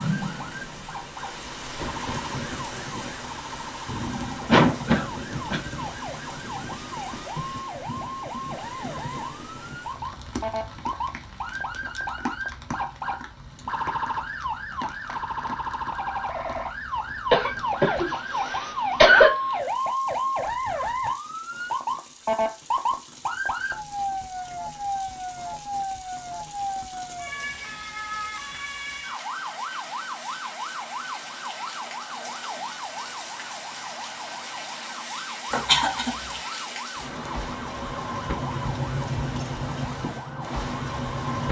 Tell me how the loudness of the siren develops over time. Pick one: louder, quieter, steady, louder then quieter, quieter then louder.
louder then quieter.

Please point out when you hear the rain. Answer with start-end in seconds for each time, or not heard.
0.0-41.4.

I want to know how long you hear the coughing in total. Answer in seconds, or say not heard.
4 s.